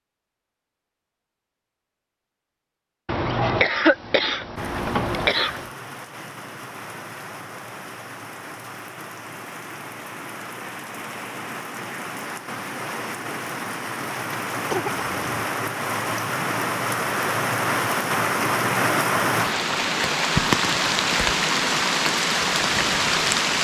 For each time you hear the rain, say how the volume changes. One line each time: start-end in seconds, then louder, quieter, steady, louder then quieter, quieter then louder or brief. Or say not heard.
4.5-23.5 louder.